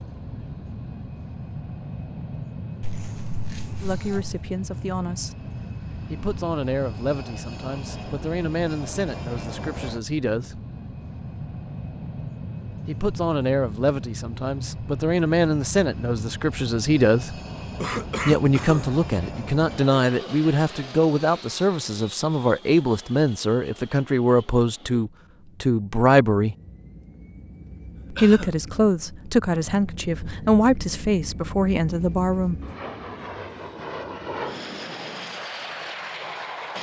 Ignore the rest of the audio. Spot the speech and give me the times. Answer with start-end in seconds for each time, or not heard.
3.8-5.3, 6.1-10.6, 12.8-17.4, 18.2-26.6, 28.1-32.5.